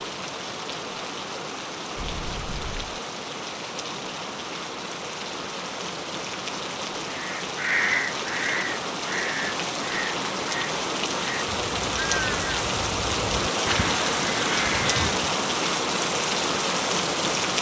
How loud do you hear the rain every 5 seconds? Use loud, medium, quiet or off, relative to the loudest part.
medium, medium, loud, loud.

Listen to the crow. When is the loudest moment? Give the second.
8 s.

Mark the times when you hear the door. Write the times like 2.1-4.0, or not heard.
1.9-2.9.